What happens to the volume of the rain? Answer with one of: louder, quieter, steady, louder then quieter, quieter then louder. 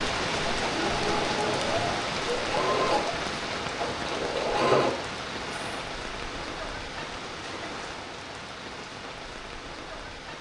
quieter.